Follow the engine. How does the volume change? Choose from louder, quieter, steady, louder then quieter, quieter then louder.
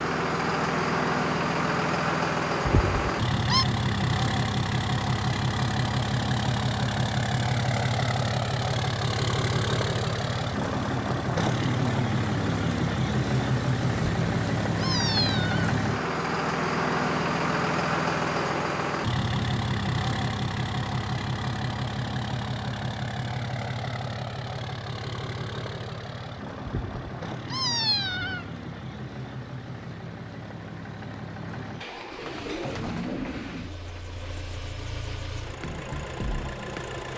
quieter.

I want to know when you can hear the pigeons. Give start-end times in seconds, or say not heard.
31.7-34.3.